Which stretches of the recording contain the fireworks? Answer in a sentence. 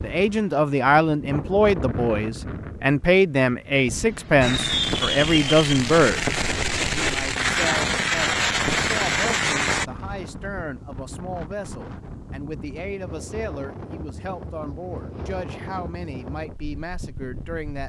The fireworks can be heard from 4.4 to 9.8 s.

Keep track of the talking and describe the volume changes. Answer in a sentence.
The volume of the talking goes down.